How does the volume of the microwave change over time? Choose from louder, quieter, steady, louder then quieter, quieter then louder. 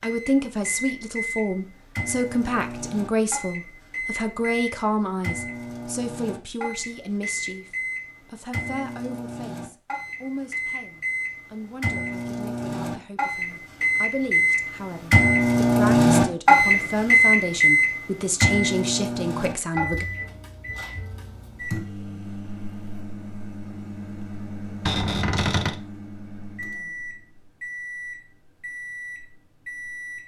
louder then quieter.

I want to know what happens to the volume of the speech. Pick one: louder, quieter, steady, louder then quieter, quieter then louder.
quieter then louder.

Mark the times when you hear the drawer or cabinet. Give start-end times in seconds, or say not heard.
24.9-25.8.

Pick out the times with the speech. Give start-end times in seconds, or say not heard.
0.0-20.1.